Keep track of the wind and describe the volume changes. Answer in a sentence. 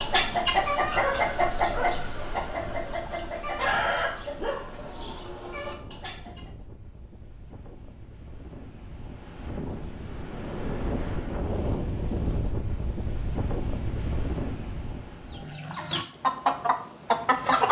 The loudness of the wind goes up.